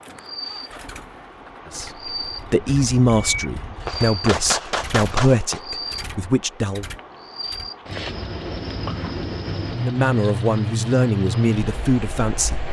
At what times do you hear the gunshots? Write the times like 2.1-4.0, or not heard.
3.3-5.6.